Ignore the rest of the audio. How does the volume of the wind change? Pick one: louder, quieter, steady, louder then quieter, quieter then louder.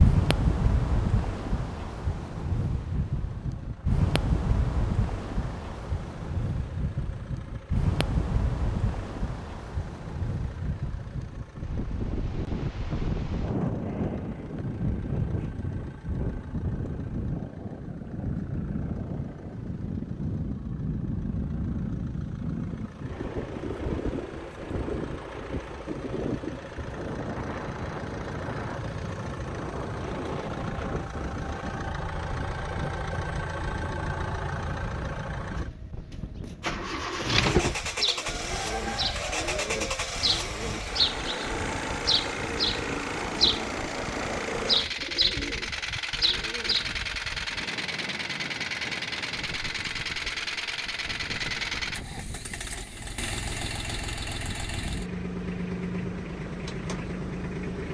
quieter.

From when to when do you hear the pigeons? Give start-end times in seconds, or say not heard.
37.0-46.9.